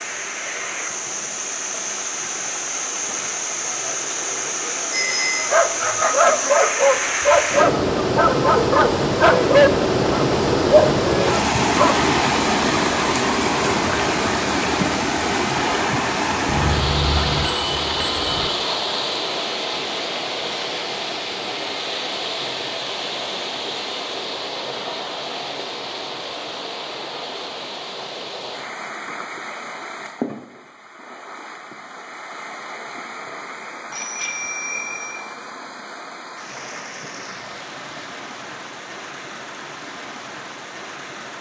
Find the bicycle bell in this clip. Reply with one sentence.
You can hear the bicycle bell from 4.9 to 5.5 s, from 16.4 to 18.5 s and from 33.9 to 35.1 s.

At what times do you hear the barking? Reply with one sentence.
The barking can be heard from 5.4 to 11.9 s.